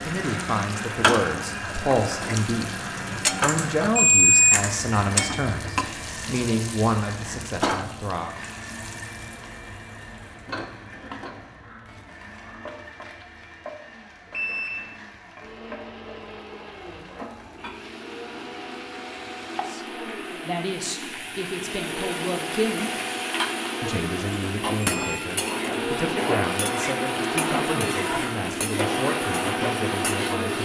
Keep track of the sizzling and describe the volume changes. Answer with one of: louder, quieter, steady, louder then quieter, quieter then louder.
quieter then louder.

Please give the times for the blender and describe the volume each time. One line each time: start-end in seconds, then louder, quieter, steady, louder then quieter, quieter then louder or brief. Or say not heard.
0.0-30.6 quieter then louder.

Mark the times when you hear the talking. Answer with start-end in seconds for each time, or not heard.
0.0-8.3, 19.6-22.9, 23.8-30.6.